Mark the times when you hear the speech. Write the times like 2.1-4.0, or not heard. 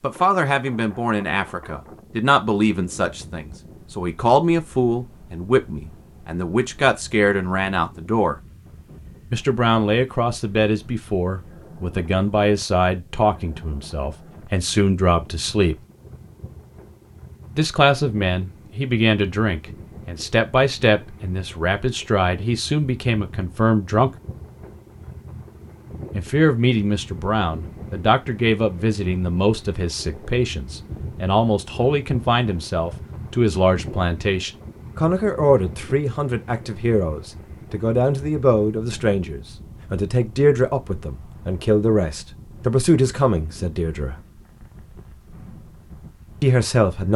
0.0-8.3, 9.3-15.8, 17.6-24.1, 26.1-44.1, 46.4-47.1.